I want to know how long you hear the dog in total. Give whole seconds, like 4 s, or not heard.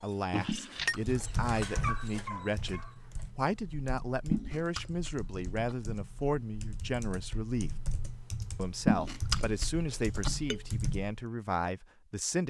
3 s.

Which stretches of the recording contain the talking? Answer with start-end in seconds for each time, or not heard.
0.0-7.8, 8.6-12.4.